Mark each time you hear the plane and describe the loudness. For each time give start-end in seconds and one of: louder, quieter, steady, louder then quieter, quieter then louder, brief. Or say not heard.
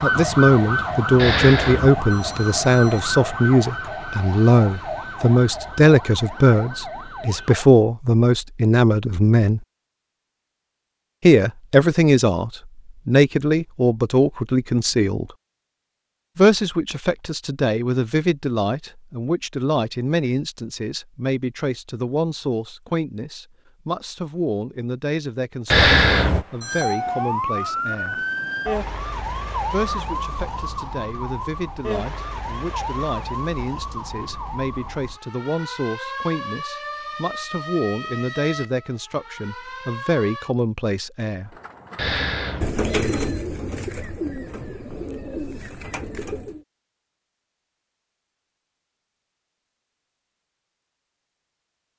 not heard.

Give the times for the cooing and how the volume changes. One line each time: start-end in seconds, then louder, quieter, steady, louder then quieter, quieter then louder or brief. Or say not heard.
41.5-46.6 louder then quieter.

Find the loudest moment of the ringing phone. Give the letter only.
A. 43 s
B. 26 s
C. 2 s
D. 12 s
B.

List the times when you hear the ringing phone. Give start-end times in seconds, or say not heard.
1.1-3.0, 25.7-27.0, 42.0-43.4.